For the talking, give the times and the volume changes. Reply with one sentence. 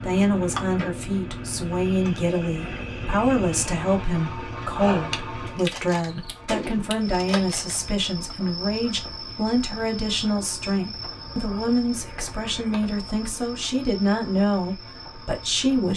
The talking can be heard from 0.0 to 15.9 s, at a steady volume.